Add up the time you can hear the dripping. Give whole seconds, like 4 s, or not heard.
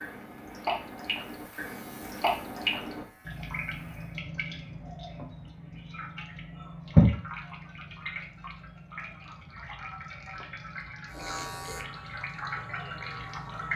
14 s.